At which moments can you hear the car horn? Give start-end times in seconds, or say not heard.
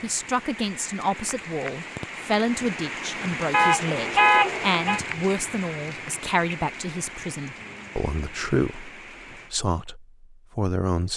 3.5-5.0.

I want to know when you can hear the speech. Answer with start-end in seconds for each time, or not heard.
0.0-11.1.